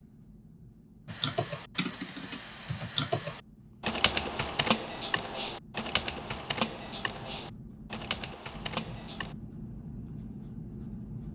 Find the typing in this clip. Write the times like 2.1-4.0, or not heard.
1.1-9.3.